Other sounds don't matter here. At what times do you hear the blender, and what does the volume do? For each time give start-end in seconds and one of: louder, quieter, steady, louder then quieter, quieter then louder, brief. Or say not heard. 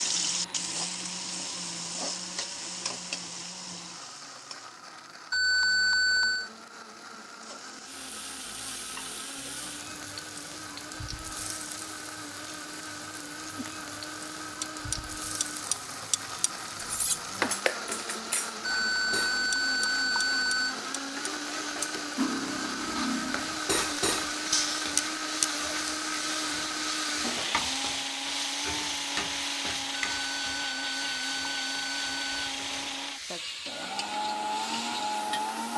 0.0-35.7 louder.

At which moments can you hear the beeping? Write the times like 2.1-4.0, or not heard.
5.3-6.5, 18.6-20.8, 30.1-32.5.